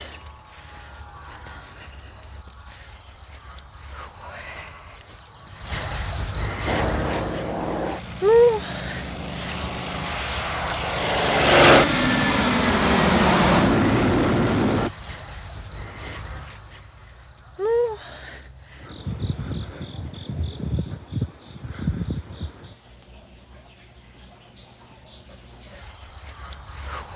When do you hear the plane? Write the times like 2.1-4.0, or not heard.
6.7-14.9.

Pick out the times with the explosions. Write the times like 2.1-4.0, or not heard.
not heard.